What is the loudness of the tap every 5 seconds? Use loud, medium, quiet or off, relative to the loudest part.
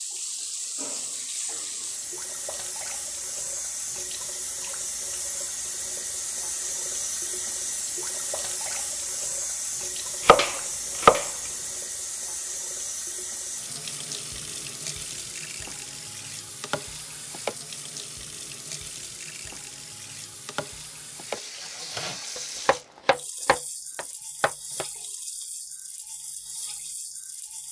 loud, loud, loud, medium, medium, medium.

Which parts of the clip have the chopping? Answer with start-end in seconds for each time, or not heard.
10.2-11.3, 22.4-24.9.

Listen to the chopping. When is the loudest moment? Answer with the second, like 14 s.
11 s.